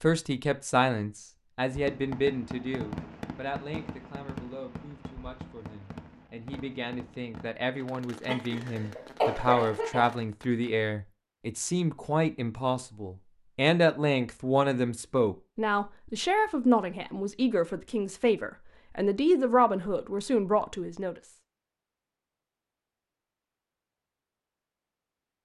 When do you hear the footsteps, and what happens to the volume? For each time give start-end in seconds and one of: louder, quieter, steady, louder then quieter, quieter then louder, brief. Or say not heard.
not heard.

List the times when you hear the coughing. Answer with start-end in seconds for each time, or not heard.
8.2-10.2.